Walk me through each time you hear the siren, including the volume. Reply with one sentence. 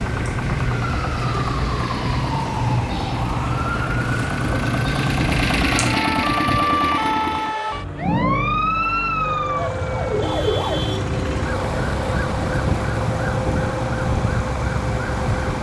The siren can be heard from 0.0 to 15.5 s, at a steady volume.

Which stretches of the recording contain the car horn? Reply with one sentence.
The car horn can't be heard in this clip.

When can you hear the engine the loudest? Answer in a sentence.
The loudest moment of the engine is at 6 seconds.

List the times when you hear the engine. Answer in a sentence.
You can hear the engine from 0.0 to 15.5 s.